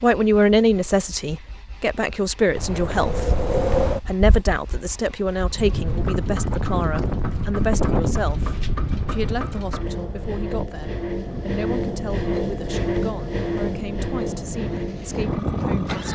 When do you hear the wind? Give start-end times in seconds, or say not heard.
2.5-16.1.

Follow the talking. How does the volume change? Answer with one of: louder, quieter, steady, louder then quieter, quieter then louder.
quieter.